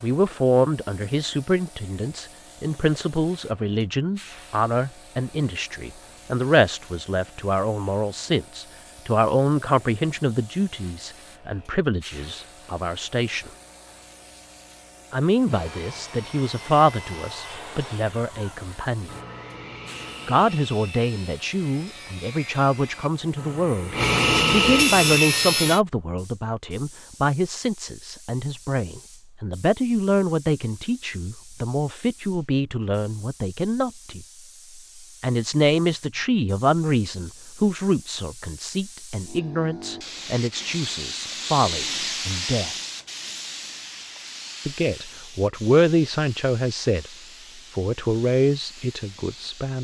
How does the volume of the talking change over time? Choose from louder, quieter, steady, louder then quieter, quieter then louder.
steady.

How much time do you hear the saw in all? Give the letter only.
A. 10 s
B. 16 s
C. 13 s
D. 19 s
A.